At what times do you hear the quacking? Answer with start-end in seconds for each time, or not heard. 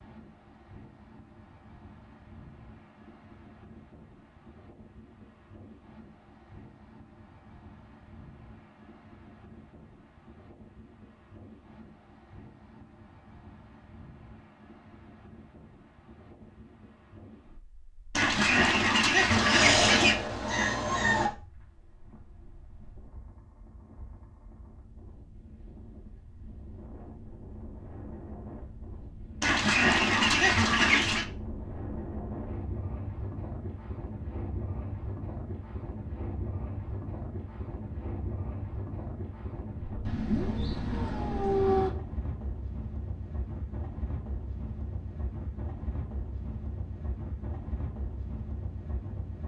18.1-20.1, 29.4-31.2.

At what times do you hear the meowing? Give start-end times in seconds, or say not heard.
19.2-21.3, 40.0-41.9.